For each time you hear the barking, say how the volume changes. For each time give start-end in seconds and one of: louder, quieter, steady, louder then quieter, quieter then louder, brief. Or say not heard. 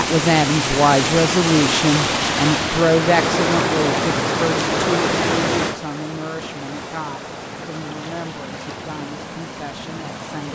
not heard.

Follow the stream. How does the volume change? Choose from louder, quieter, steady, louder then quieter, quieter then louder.
quieter.